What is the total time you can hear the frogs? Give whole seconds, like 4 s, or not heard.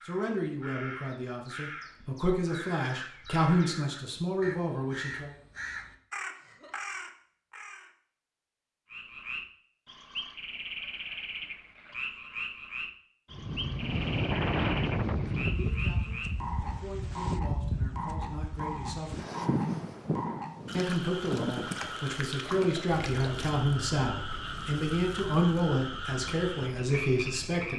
19 s.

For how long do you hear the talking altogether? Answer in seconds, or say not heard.
16 s.